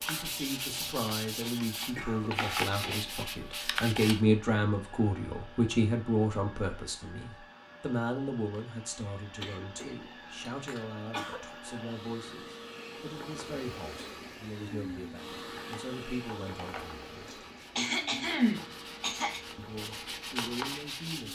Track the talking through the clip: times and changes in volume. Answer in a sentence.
The talking can be heard from 0.1 to 17.1 s, getting louder then quieter; and briefly from 19.6 to 21.2 s.